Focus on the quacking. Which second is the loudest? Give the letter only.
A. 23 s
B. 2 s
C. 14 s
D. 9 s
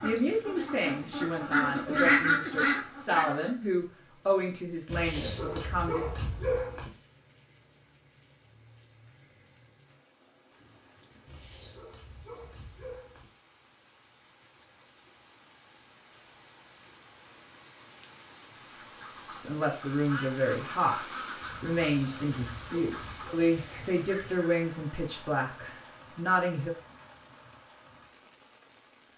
B.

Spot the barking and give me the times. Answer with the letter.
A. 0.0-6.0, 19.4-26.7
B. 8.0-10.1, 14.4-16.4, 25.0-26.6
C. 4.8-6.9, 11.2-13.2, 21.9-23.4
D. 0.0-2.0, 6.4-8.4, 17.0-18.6
C.